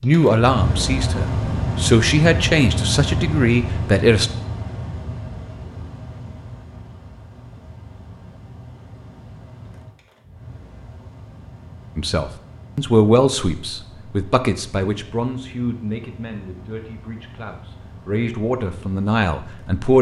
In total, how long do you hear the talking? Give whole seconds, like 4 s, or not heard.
12 s.